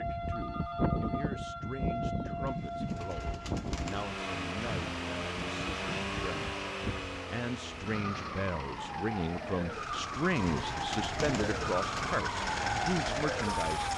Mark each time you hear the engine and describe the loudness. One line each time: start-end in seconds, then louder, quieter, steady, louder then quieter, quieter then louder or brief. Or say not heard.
3.8-13.9 quieter then louder.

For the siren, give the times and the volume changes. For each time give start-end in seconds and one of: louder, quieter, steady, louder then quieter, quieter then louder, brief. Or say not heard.
0.0-13.9 quieter then louder.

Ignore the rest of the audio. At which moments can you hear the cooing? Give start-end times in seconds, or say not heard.
2.5-4.2, 9.9-12.2.